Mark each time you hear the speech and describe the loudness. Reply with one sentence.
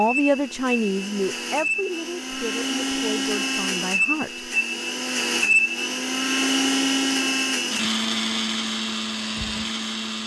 The speech can be heard from 0.0 to 4.4 s, getting quieter.